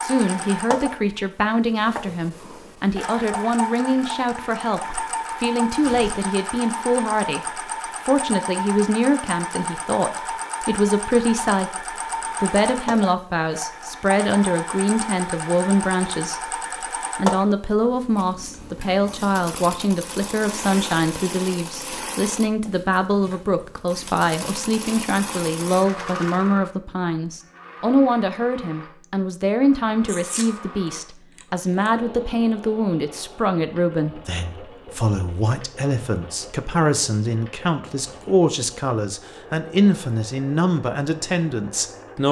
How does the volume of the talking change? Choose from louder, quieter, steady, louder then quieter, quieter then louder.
steady.